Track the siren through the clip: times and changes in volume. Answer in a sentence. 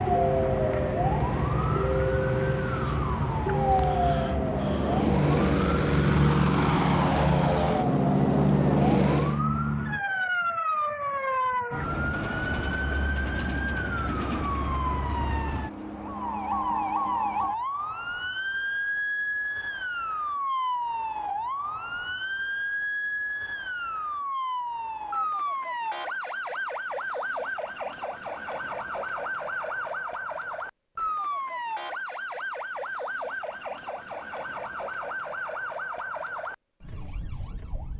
You can hear the siren from 0.0 to 37.9 s, getting quieter.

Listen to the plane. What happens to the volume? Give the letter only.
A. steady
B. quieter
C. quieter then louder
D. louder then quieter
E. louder
E.